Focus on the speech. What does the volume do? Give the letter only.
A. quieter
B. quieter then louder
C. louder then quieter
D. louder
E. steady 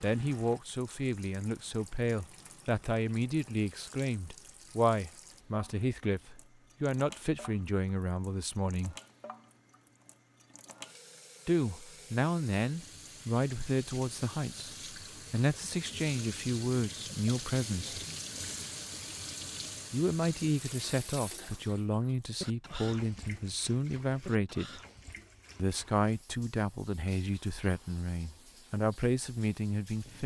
E.